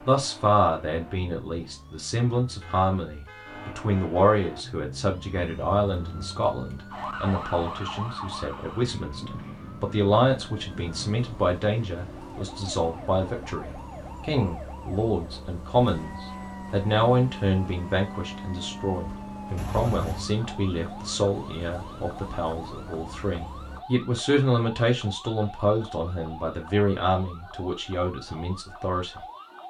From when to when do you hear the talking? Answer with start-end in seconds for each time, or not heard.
0.0-29.2.